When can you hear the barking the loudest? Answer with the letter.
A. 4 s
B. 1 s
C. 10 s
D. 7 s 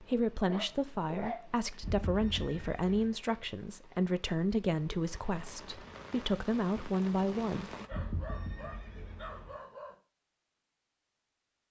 B.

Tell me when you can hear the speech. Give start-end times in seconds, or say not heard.
0.0-7.8.